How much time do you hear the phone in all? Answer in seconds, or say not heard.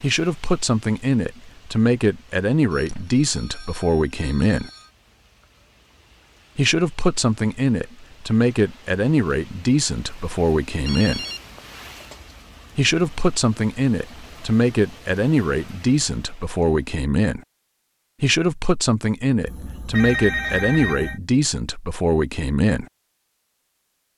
5 s.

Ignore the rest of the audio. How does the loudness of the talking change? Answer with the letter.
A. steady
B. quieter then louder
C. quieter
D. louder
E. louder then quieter
A.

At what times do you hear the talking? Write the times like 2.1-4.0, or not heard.
0.0-4.7, 6.5-11.2, 12.8-17.4, 18.2-22.9.